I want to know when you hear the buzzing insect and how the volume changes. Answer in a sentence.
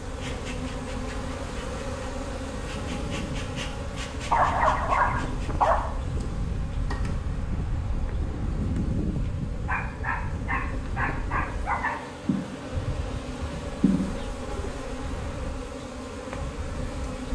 The buzzing insect can be heard from 0.0 to 17.3 s, getting quieter then louder.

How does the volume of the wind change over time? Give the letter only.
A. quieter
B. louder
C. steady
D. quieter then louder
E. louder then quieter
E.